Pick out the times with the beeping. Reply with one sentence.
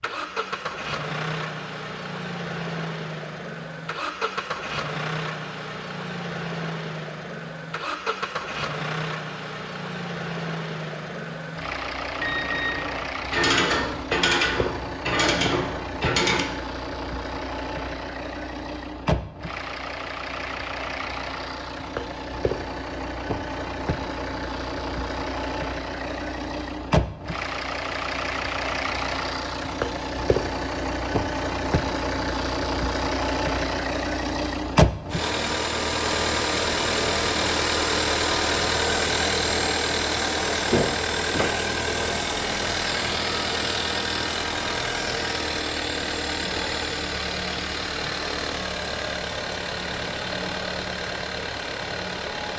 The beeping can be heard from 12.2 to 13.1 s.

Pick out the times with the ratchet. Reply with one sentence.
The ratchet can be heard from 13.2 to 16.4 s.